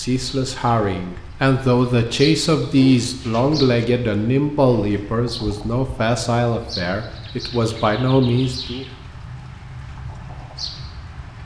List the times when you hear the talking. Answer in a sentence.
The talking can be heard from 0.0 to 8.8 s.